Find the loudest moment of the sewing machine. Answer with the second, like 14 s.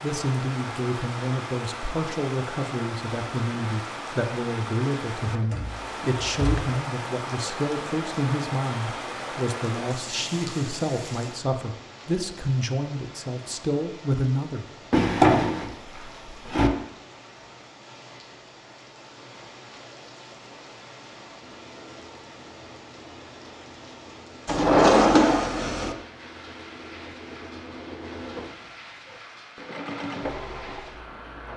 30 s.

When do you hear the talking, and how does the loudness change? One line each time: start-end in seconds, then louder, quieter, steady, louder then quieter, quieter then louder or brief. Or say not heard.
0.0-14.7 steady.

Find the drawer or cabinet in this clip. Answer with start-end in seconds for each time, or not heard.
5.4-6.7, 14.9-16.7, 24.4-25.9.